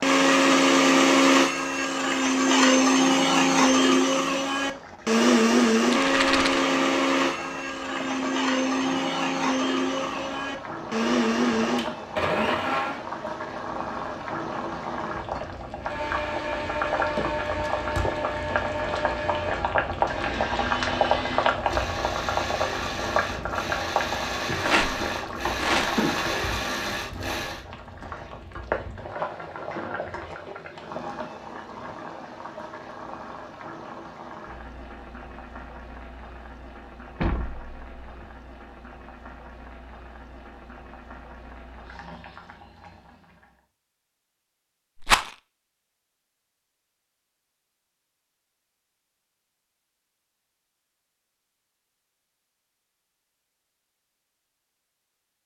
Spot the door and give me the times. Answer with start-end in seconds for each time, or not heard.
37.2-38.2.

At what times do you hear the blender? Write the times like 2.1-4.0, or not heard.
0.0-13.1, 15.8-27.6.